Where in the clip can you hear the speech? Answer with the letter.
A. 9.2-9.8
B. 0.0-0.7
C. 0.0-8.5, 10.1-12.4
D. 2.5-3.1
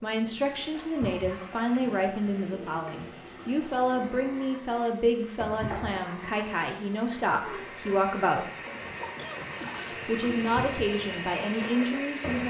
C.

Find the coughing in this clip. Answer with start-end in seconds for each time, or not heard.
9.2-9.8.